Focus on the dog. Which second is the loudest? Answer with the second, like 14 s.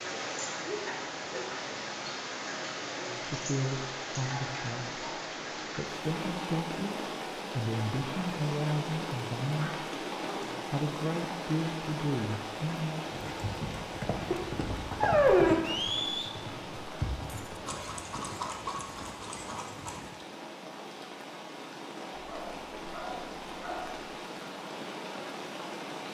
15 s.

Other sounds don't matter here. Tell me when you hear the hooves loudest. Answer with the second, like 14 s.
16 s.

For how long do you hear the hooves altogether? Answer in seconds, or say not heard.
7 s.